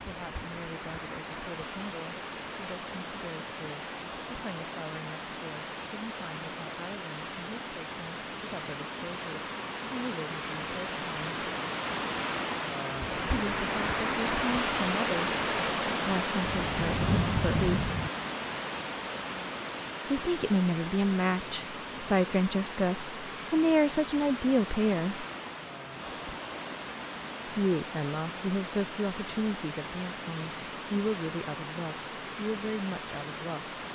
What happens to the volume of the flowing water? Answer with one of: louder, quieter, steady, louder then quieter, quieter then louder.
louder then quieter.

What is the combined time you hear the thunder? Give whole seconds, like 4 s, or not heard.
2 s.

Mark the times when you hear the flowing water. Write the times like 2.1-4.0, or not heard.
0.0-33.9.